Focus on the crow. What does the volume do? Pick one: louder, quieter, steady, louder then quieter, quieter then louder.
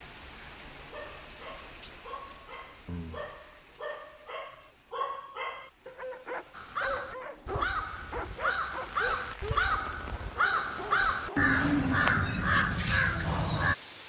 louder.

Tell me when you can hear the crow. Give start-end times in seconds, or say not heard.
6.5-13.8.